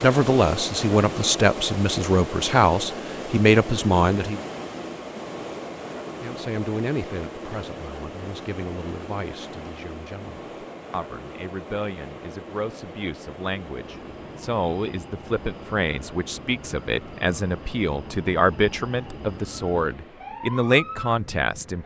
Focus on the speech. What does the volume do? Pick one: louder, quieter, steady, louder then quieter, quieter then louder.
quieter then louder.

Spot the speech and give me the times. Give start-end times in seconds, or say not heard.
0.0-4.4, 6.2-21.8.